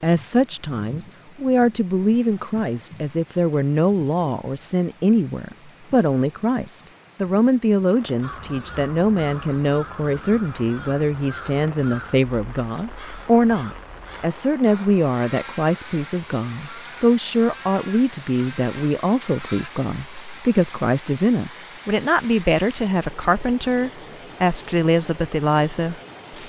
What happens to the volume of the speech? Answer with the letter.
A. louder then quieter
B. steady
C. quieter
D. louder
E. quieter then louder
B.